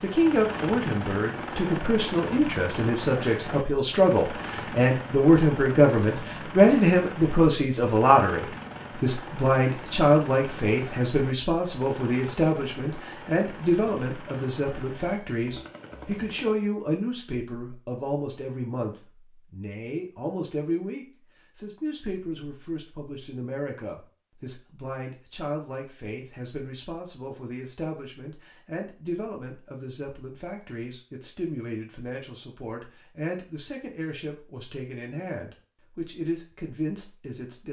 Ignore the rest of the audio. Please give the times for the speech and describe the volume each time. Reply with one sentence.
You can hear the speech from 0.0 to 37.6 s, getting quieter.